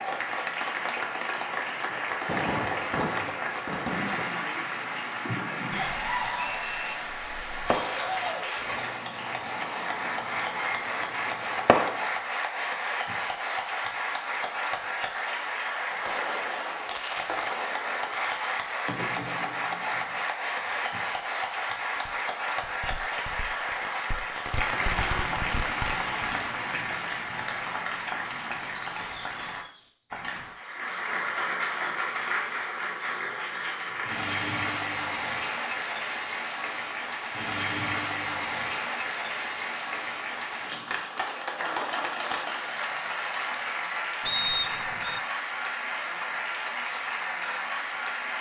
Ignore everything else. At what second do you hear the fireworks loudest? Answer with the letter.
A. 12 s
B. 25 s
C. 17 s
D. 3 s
A.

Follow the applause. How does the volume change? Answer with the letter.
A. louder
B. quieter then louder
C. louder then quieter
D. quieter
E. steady
E.